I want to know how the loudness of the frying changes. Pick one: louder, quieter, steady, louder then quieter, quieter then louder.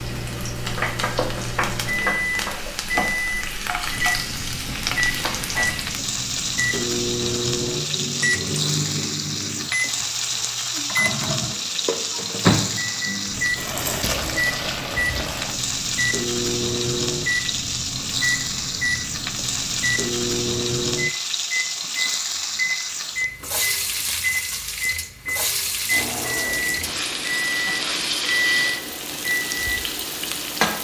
steady.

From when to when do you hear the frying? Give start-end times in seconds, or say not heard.
0.0-30.7.